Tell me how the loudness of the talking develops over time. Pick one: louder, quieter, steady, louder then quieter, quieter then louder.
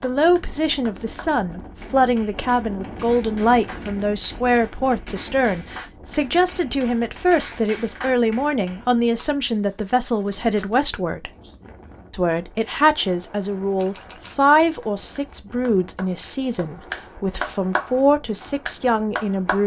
steady.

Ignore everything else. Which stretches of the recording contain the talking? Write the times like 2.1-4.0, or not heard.
0.0-11.3, 12.1-19.6.